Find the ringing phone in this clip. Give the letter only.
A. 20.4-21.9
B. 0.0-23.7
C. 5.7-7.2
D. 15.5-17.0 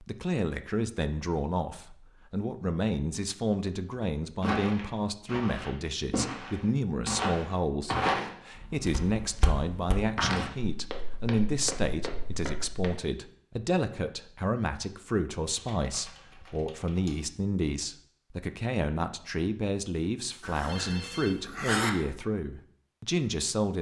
A.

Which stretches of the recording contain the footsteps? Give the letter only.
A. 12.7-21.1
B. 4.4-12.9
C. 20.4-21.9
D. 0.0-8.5
B.